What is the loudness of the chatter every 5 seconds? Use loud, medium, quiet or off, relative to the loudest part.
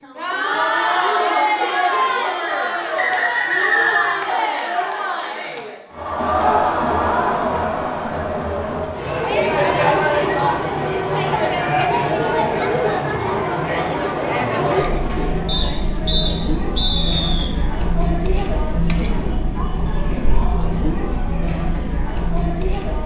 loud, loud, loud, medium, medium.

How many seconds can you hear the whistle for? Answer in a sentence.
The whistle can be heard for 4 seconds in total.